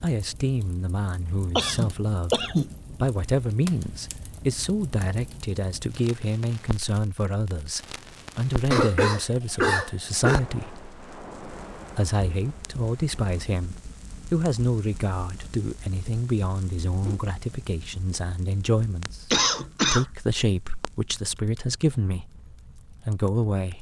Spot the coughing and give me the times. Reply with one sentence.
You can hear the coughing from 1.6 to 2.8 s, from 8.7 to 10.4 s and from 19.3 to 20.1 s.